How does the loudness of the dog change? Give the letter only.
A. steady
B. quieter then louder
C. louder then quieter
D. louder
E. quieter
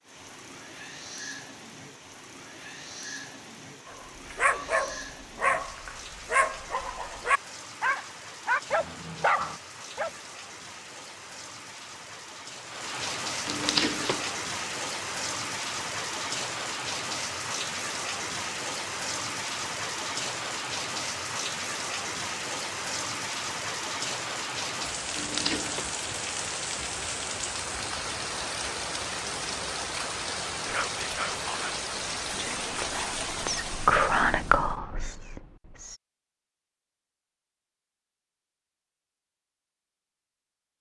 A.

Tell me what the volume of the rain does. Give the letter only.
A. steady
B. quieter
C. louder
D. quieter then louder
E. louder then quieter
C.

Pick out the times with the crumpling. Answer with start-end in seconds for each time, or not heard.
13.4-14.3, 25.1-25.9.